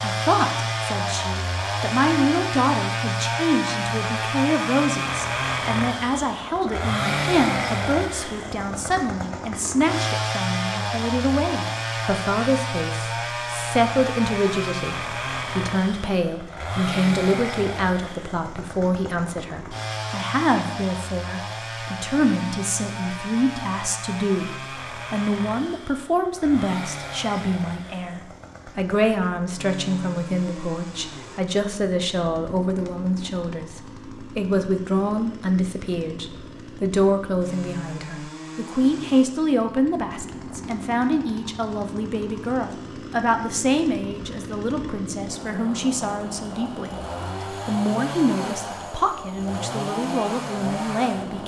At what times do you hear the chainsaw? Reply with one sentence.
The chainsaw can be heard from 0.0 to 51.4 s.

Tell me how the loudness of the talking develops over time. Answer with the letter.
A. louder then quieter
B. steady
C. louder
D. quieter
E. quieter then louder
B.